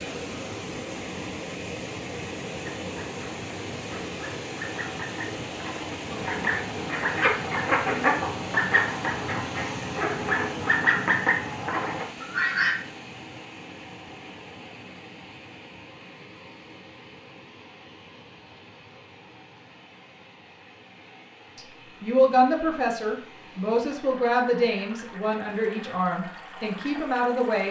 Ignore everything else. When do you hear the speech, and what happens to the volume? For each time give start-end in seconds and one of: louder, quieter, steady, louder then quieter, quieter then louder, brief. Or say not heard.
21.6-27.6 quieter.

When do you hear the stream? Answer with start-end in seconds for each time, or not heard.
0.0-27.6.